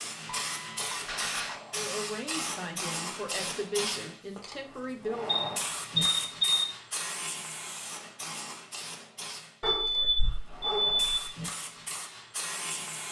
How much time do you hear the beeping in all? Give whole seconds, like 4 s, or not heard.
4 s.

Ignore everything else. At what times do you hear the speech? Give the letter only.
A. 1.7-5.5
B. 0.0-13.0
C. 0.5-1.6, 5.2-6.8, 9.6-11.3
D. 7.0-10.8
A.